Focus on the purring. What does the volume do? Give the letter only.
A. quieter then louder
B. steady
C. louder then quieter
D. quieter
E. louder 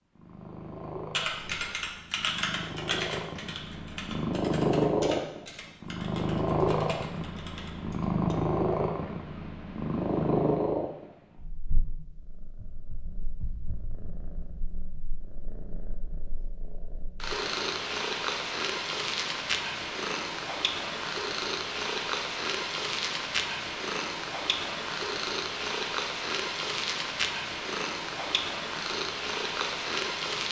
A.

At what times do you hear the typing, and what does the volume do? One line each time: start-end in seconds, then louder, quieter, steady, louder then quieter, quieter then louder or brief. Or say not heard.
1.1-8.3 quieter.